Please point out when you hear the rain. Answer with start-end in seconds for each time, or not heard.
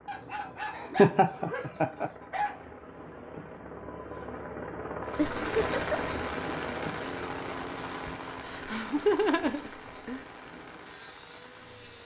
5.0-12.0.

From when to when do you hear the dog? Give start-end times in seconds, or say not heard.
0.1-2.6.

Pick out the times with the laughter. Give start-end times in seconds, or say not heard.
0.8-2.1, 5.2-6.0, 8.4-10.2.